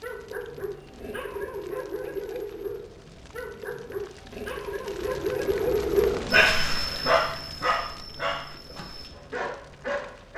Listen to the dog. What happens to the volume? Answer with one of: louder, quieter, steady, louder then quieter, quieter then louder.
louder then quieter.